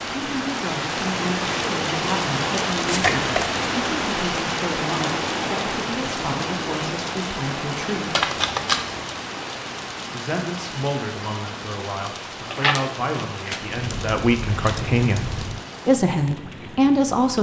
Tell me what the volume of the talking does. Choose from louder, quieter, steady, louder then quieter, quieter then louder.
louder.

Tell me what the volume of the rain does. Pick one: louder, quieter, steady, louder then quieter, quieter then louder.
quieter.